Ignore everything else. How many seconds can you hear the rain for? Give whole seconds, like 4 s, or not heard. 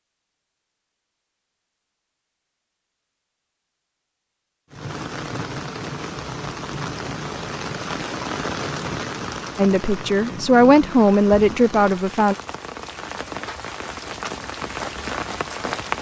11 s.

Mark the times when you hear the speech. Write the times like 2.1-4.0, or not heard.
9.6-12.3.